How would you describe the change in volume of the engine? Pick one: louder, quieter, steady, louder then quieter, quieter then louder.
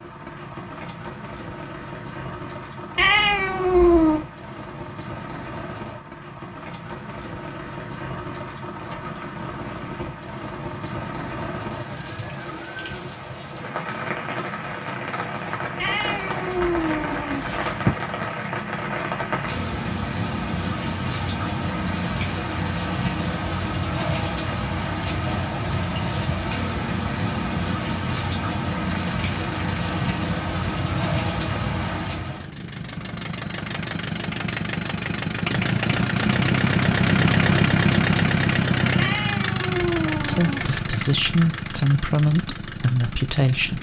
louder then quieter.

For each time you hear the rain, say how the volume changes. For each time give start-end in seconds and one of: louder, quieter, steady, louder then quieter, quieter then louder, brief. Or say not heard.
0.0-32.5 louder.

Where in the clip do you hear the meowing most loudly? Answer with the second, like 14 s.
4 s.